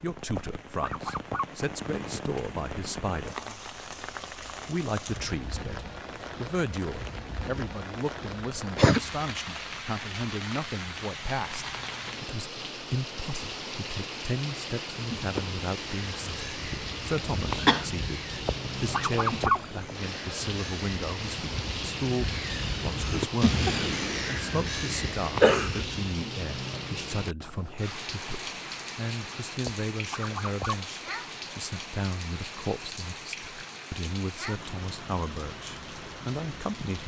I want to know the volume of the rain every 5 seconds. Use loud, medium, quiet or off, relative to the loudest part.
loud, loud, loud, loud, loud, loud, loud, medium.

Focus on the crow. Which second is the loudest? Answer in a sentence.
The loudest moment of the crow is at 24 seconds.